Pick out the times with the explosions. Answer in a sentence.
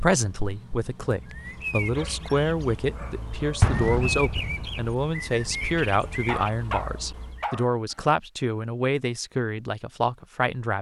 You can hear the explosions from 3.6 to 4.8 s.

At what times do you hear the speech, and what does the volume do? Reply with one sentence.
You can hear the speech from 0.0 to 10.7 s, at a steady volume.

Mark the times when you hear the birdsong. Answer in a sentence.
The birdsong can be heard from 0.1 to 7.5 s.